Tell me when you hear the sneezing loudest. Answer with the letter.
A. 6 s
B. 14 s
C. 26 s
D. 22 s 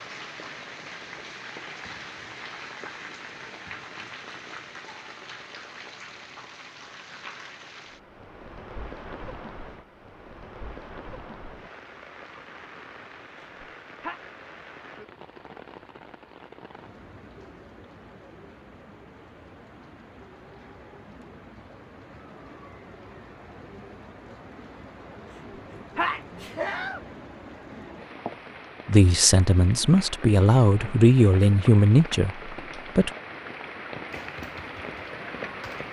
C.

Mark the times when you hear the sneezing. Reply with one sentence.
You can hear the sneezing from 13.4 to 14.2 s and from 25.9 to 27.0 s.